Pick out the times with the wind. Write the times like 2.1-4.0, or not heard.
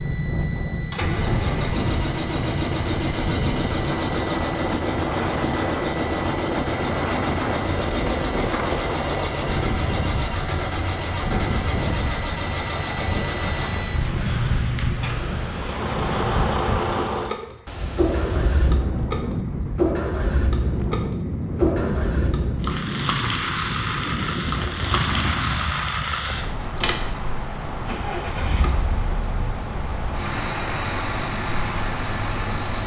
0.0-32.8.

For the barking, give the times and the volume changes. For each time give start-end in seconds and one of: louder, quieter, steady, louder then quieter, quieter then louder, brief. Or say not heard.
not heard.